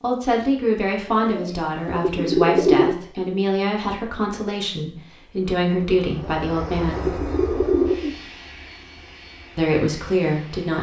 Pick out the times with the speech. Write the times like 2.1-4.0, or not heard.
0.0-7.2, 9.6-10.7.